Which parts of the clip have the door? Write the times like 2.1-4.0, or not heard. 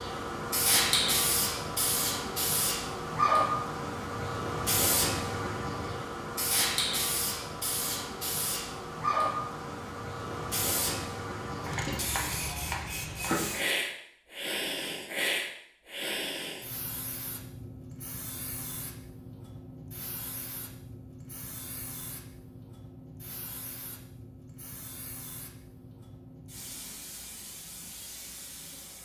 not heard.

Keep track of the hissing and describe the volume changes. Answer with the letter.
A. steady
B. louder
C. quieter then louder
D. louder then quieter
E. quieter
E.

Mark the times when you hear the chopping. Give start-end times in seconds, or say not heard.
11.6-13.3.